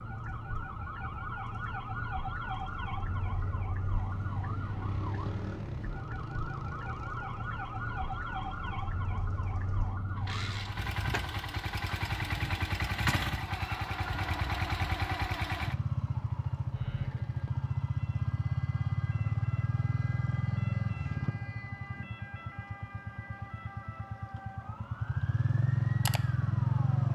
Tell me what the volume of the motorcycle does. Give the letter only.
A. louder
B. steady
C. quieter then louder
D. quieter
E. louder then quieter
A.